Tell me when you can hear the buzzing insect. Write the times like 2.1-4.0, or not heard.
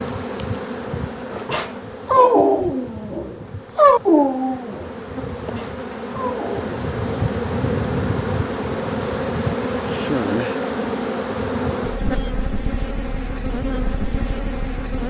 0.0-15.0.